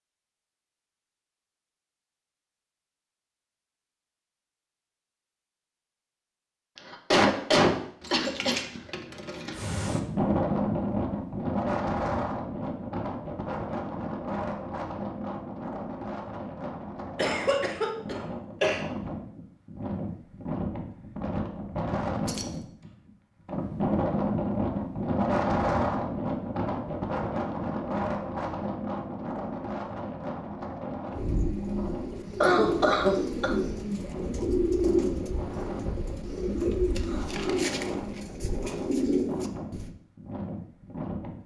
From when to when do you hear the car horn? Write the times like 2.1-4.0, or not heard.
not heard.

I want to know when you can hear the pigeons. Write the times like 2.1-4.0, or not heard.
31.1-40.0.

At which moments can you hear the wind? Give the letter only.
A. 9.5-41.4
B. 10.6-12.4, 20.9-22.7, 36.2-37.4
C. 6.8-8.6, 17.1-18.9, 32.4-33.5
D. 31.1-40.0
A.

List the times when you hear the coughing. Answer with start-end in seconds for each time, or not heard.
6.8-8.6, 17.1-18.9, 32.4-33.5.